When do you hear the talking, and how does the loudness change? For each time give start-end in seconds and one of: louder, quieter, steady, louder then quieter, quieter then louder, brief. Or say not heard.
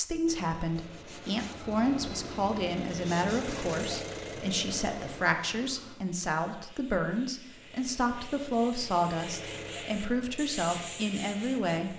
0.0-11.9 steady.